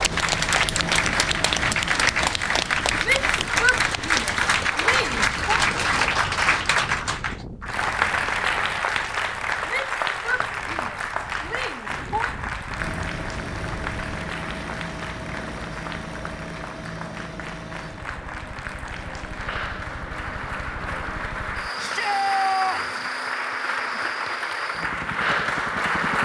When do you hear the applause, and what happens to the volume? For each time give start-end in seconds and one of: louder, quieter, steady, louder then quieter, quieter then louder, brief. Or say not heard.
0.0-26.2 quieter then louder.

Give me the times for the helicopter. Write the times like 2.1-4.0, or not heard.
0.0-3.4, 12.7-26.2.